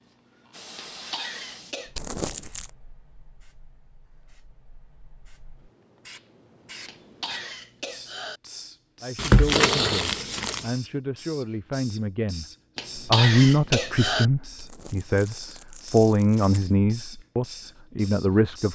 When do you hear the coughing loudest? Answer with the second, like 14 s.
13 s.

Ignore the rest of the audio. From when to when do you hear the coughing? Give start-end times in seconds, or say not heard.
0.8-1.9, 6.8-8.4, 12.8-14.2.